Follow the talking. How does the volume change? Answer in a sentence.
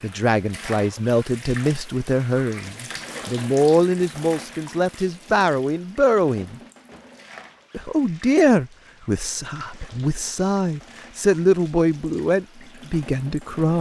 The loudness of the talking stays about the same.